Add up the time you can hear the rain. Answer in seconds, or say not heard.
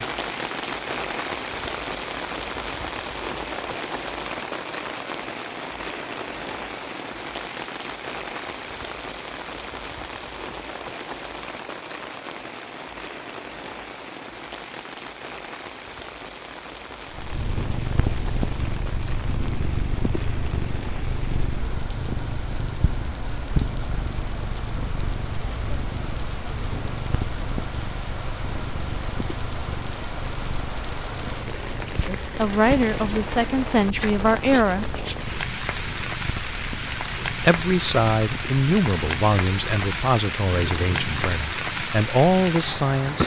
43 s.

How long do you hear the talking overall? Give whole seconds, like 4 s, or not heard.
9 s.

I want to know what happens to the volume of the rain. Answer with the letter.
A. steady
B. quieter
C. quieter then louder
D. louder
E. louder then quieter
C.